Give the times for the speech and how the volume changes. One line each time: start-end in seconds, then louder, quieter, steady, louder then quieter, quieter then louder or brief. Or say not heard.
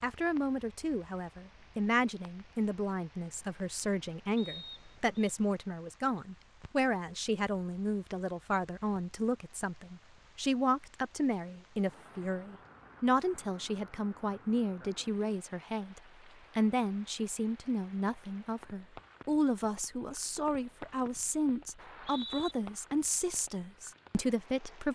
0.0-24.9 steady.